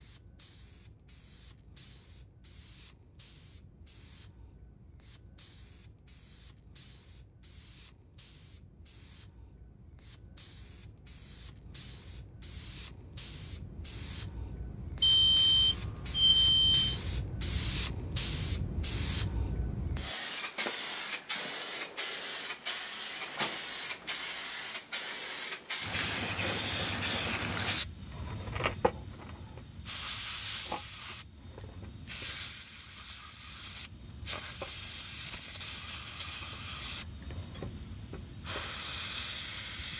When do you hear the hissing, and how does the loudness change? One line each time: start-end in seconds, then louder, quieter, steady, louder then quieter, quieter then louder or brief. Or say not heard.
0.0-39.9 louder.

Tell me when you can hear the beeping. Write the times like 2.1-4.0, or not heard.
15.0-17.0.